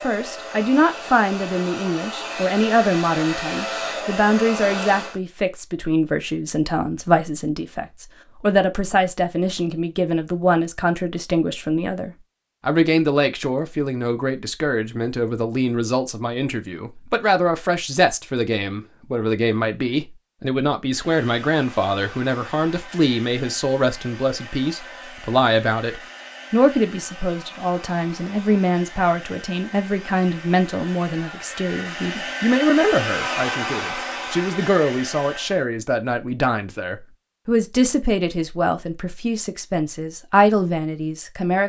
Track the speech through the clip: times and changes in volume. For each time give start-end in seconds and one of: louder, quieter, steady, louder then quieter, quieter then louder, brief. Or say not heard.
0.0-41.6 steady.